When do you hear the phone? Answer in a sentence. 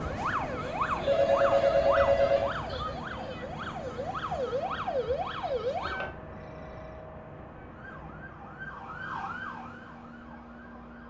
The phone can be heard from 1.0 to 2.5 s and from 5.8 to 7.0 s.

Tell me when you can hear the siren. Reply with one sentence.
The siren can be heard from 0.0 to 6.1 s and from 7.5 to 11.0 s.